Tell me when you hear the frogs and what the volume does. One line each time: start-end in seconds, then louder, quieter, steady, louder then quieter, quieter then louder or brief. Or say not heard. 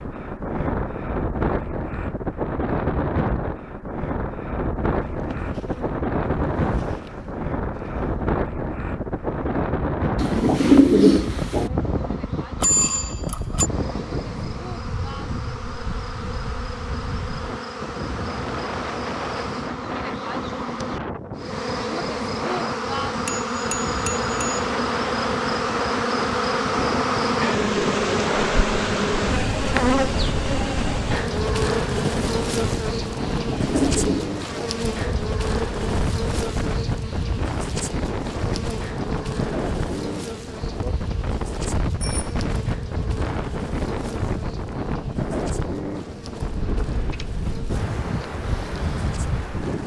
not heard.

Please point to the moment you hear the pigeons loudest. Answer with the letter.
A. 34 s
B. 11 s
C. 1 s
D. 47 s
B.